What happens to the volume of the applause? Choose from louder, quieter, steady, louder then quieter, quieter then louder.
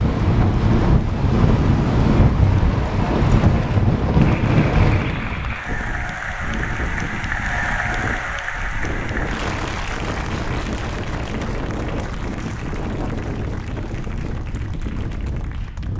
louder then quieter.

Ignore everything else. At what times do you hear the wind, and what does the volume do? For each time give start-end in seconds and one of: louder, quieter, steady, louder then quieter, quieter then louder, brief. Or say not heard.
0.0-15.9 quieter.